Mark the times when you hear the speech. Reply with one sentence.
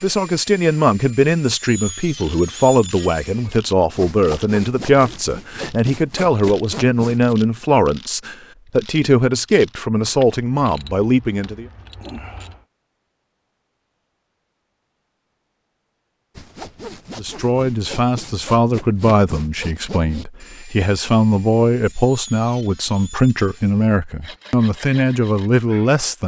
The speech can be heard from 0.0 to 11.7 s and from 17.1 to 26.2 s.